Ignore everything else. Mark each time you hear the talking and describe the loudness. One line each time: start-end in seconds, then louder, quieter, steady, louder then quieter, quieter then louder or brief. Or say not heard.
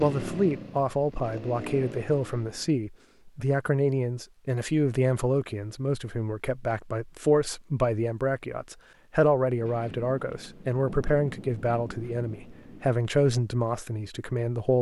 0.0-14.7 steady.